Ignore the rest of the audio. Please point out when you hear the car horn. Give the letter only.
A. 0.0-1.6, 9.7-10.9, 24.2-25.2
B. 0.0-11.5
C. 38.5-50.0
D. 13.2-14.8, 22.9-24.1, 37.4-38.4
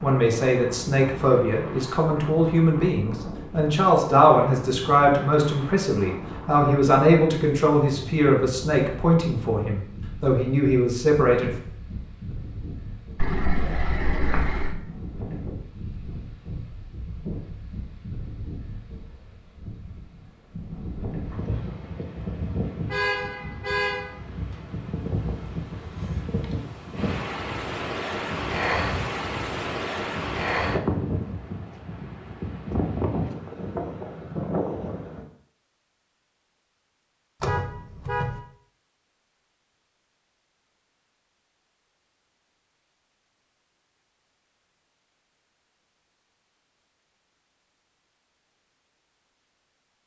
D.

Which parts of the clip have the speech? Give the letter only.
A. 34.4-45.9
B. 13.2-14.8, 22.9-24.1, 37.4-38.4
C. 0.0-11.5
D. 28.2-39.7
C.